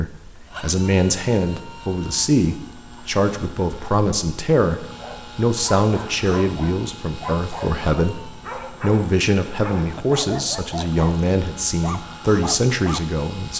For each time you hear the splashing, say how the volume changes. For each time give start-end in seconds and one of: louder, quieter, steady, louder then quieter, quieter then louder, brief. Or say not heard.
not heard.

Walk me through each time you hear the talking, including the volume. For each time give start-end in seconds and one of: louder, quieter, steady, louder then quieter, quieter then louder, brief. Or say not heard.
0.0-13.5 steady.